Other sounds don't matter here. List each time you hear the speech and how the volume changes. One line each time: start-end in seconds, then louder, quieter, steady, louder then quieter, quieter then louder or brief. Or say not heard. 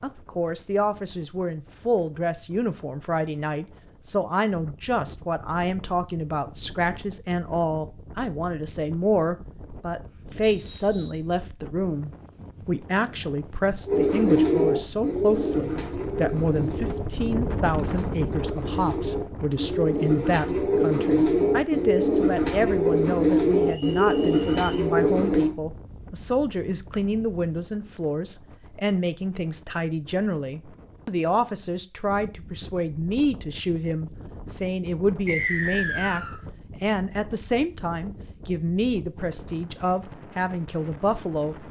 0.0-41.6 steady.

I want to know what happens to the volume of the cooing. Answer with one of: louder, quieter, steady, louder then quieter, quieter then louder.
quieter then louder.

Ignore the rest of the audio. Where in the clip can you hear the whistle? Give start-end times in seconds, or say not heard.
10.4-11.2, 23.6-24.7, 35.2-36.4.